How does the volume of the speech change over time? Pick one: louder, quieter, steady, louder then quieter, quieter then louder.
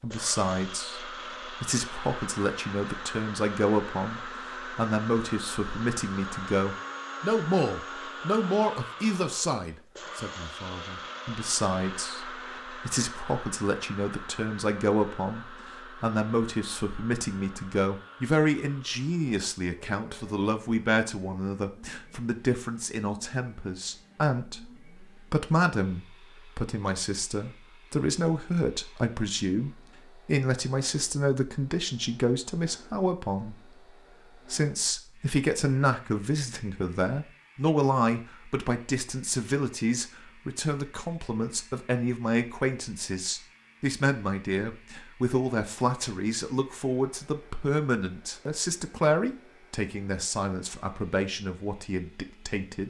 steady.